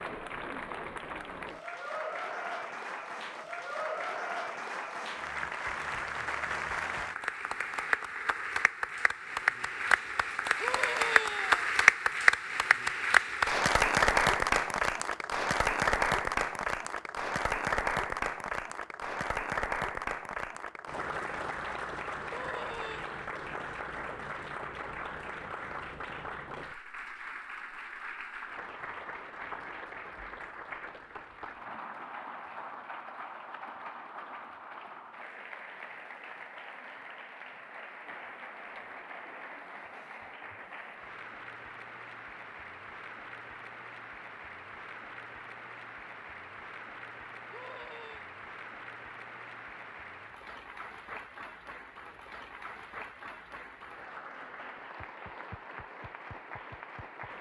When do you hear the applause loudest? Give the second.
12 s.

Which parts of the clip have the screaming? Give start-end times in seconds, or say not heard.
10.6-11.7, 22.2-23.1, 47.5-48.2.